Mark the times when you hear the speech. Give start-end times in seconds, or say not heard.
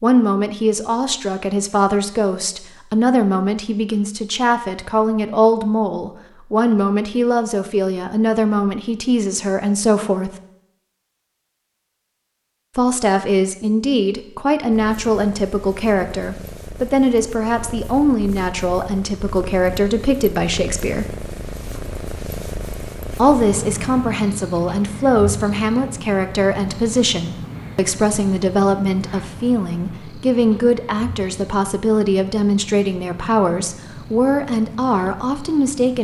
0.0-10.3, 12.8-21.1, 23.1-36.0.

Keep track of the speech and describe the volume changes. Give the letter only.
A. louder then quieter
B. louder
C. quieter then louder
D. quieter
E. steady
E.